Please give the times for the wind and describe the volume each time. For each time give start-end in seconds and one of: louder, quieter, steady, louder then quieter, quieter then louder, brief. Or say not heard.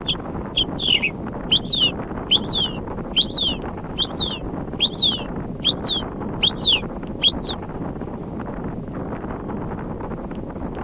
0.0-10.8 steady.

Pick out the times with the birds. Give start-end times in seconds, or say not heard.
0.1-7.5.